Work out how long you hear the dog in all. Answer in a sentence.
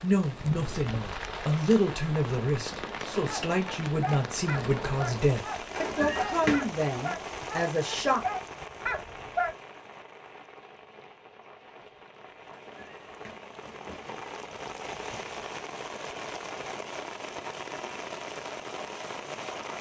The dog can be heard for 6 seconds in total.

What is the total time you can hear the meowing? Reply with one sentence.
You can hear the meowing for 3 seconds altogether.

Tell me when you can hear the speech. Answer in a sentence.
The speech can be heard from 0.0 to 8.2 s.